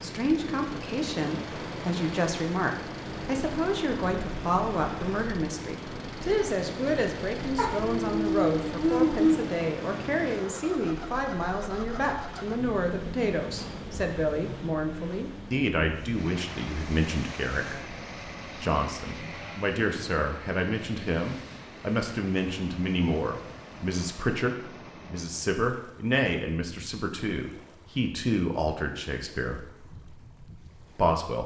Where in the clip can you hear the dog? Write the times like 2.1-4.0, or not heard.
7.5-9.5.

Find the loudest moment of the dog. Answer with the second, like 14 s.
9 s.